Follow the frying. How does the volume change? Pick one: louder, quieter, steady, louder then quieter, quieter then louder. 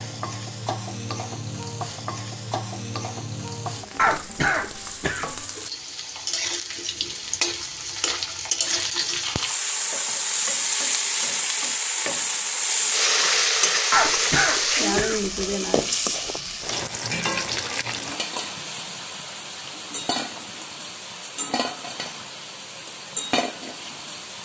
louder then quieter.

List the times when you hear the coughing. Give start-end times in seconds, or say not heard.
4.0-5.3, 13.9-15.3.